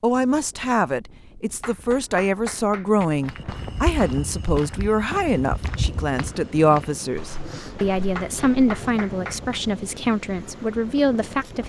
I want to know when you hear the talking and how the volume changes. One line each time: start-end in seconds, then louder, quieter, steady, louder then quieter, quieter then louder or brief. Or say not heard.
0.0-11.6 steady.